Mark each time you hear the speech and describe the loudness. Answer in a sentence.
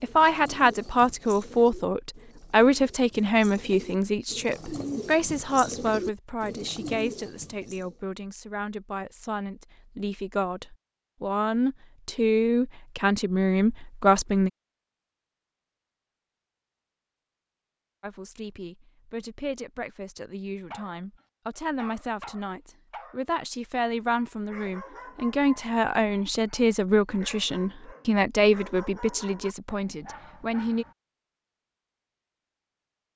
You can hear the speech from 0.0 to 14.5 s, getting quieter then louder; and from 18.0 to 30.9 s, getting louder.